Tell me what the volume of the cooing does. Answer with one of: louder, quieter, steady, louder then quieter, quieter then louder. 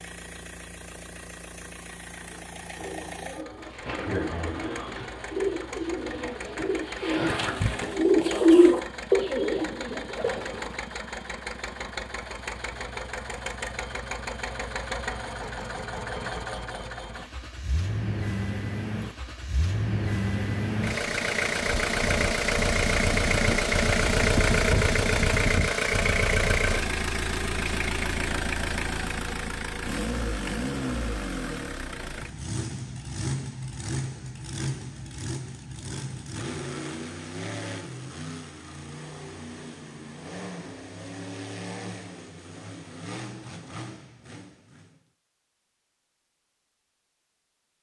louder then quieter.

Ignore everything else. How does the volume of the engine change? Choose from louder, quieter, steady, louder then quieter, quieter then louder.
louder then quieter.